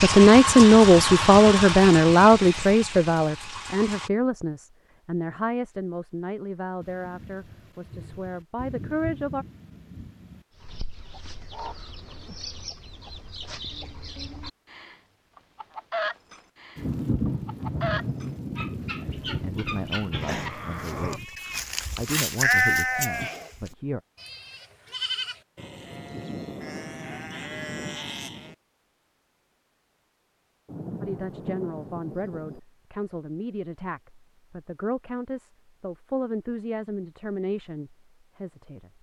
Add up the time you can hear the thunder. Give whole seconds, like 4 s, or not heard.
10 s.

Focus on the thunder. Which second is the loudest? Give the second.
17 s.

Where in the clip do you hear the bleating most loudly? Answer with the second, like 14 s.
23 s.